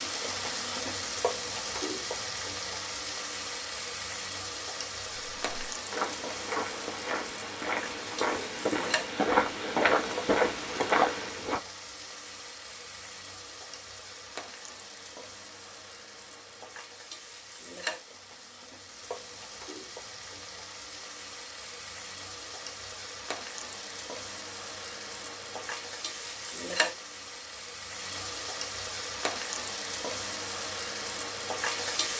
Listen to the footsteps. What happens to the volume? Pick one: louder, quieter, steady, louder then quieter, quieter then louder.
louder.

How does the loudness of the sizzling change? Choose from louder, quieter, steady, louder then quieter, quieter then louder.
quieter then louder.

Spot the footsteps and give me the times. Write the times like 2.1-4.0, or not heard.
5.4-11.6.